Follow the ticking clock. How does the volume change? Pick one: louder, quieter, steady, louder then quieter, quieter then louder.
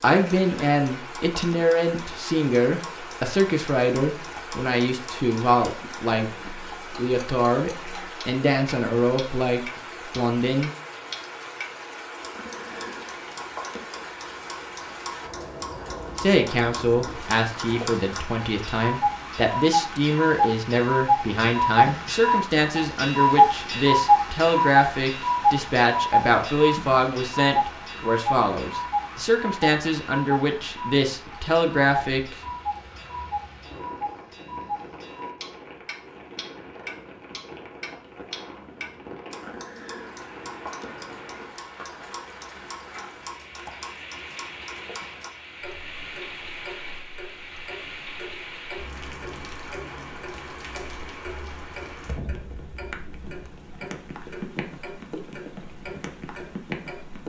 louder then quieter.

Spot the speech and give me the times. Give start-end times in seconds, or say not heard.
0.0-10.7, 16.2-32.4.